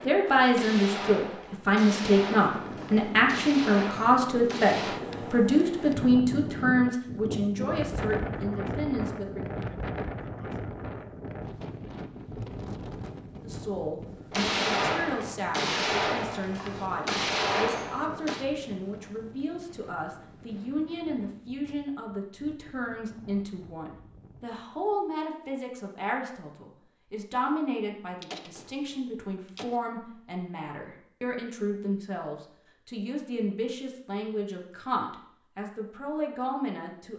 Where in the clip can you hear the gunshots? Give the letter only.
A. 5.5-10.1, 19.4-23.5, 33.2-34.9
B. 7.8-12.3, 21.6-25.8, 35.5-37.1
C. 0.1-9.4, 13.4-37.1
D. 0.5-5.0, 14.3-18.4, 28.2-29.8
D.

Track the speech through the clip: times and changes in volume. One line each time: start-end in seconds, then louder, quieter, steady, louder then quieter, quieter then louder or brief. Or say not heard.
0.1-9.4 quieter
13.4-37.1 steady.